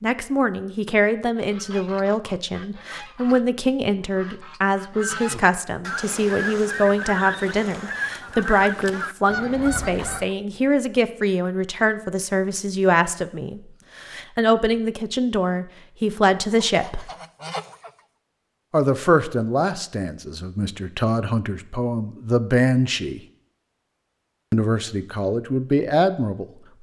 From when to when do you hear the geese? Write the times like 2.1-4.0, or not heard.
1.4-10.3, 16.5-18.1.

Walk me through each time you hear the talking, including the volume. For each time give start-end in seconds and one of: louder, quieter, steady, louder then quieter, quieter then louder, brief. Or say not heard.
0.0-17.1 steady
18.7-23.2 quieter then louder
24.5-26.4 brief.